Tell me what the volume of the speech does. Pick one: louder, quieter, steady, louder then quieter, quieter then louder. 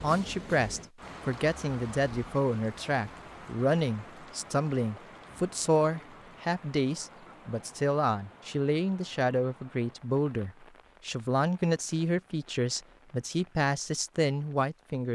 steady.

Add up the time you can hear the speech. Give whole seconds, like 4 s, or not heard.
15 s.